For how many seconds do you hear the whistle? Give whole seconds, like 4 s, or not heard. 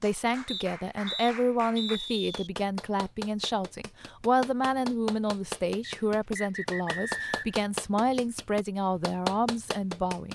4 s.